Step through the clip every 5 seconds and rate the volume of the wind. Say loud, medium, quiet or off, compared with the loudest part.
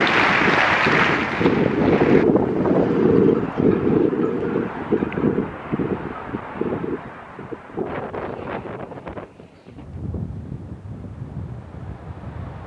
loud, medium, quiet.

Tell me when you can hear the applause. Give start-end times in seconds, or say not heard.
0.0-2.2.